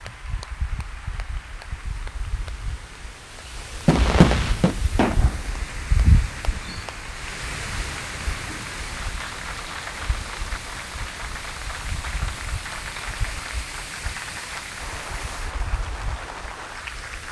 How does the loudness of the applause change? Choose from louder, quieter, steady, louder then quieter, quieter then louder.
louder.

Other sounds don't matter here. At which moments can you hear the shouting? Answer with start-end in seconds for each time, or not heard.
not heard.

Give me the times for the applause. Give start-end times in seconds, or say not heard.
0.0-17.2.